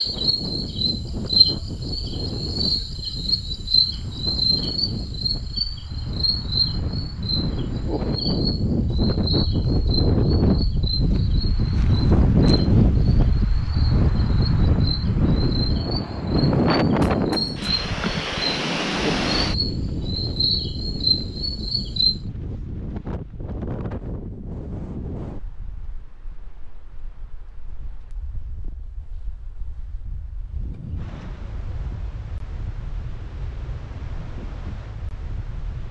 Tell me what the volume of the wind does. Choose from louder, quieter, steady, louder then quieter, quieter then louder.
louder then quieter.